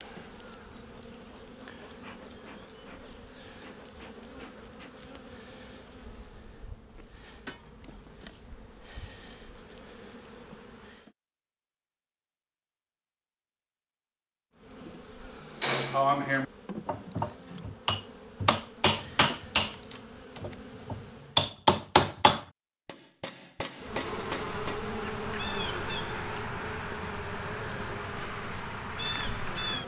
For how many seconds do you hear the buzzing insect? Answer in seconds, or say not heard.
24 s.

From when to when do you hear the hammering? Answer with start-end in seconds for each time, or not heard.
15.6-24.9.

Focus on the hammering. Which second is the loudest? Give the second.
22 s.